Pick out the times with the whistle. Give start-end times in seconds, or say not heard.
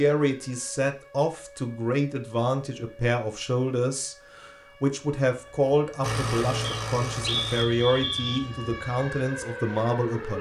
6.6-8.4.